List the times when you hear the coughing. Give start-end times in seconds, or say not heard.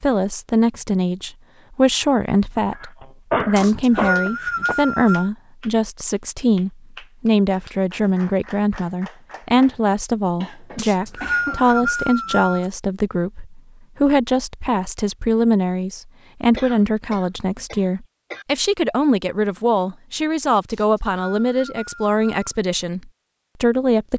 2.8-4.8, 10.4-11.6, 16.6-18.4.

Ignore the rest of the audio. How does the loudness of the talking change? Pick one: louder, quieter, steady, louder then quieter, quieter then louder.
steady.